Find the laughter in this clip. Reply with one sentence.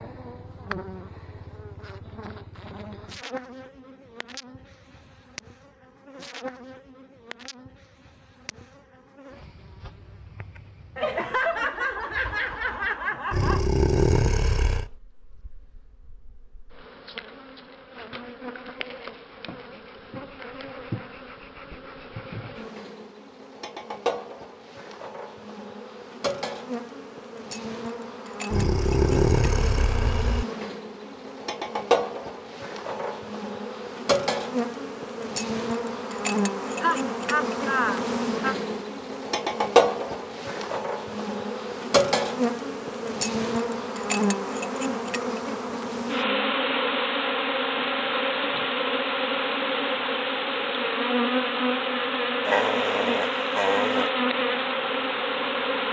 The laughter can be heard from 10.9 to 13.7 s and from 36.8 to 38.5 s.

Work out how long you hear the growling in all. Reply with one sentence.
You can hear the growling for 5 seconds altogether.